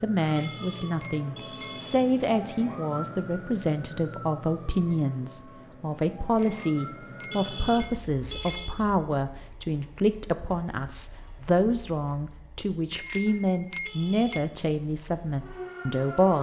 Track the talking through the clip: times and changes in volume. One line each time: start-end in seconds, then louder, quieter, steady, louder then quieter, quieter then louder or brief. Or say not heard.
0.0-16.3 steady.